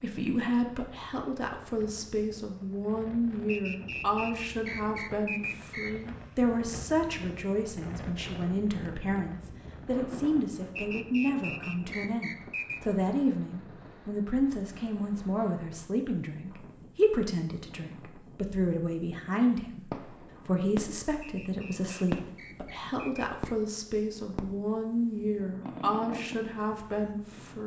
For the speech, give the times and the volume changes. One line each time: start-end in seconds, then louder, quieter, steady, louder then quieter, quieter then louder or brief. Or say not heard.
0.0-27.6 steady.